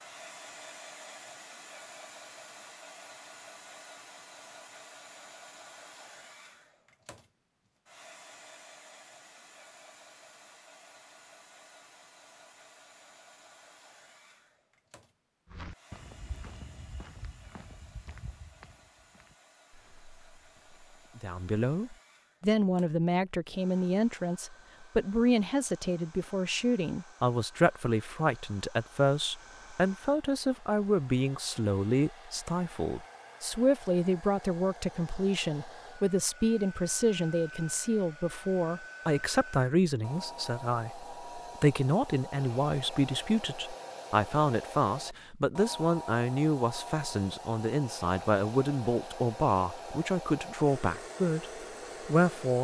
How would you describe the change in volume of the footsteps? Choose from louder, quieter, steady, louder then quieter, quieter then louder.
quieter.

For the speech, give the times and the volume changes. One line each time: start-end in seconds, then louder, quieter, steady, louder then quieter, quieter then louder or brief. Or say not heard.
21.1-51.5 steady
52.0-52.5 brief.